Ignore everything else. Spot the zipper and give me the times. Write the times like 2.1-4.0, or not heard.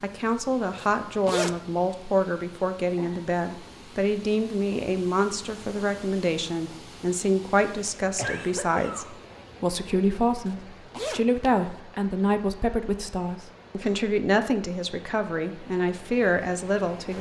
0.8-1.6, 10.4-11.8.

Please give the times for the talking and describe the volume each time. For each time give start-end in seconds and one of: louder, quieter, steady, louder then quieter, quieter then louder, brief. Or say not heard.
0.0-17.1 steady.